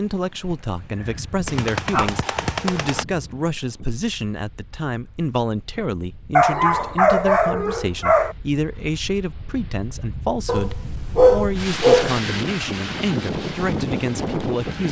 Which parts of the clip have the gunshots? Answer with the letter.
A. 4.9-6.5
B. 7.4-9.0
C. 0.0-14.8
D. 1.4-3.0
D.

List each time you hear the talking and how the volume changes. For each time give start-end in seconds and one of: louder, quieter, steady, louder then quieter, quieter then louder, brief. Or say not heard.
0.0-14.8 steady.